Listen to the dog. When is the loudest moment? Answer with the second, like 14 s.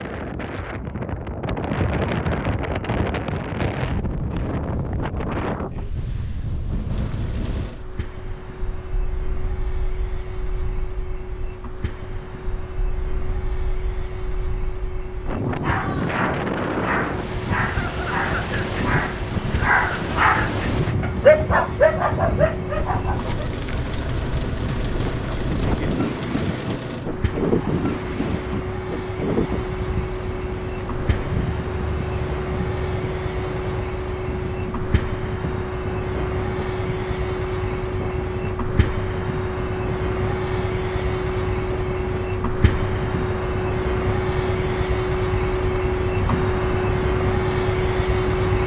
21 s.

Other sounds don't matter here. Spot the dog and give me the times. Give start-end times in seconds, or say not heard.
15.4-23.5.